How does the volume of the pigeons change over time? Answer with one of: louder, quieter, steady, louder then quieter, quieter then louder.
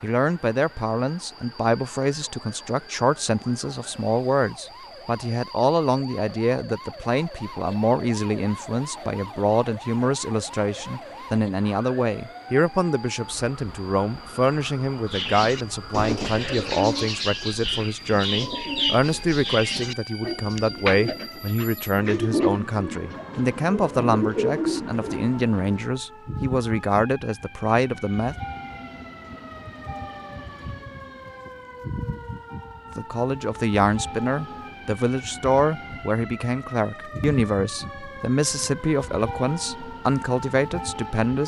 steady.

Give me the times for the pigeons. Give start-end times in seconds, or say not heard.
15.1-25.1.